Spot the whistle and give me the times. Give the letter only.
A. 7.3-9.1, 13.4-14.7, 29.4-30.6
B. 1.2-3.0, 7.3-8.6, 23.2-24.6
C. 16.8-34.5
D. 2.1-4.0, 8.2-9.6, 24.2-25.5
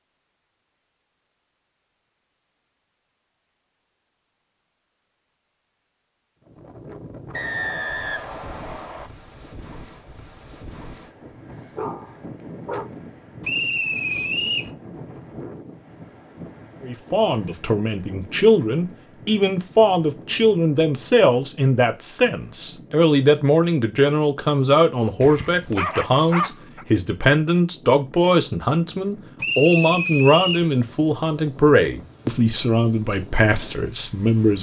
A.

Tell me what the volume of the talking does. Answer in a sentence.
The loudness of the talking stays about the same.